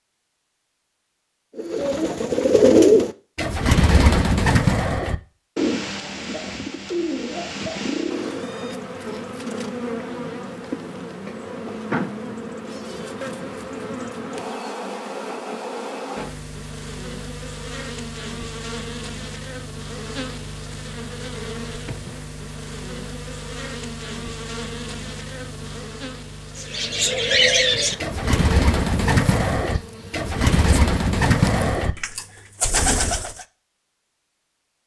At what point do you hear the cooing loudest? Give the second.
3 s.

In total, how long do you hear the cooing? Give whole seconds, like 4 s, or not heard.
14 s.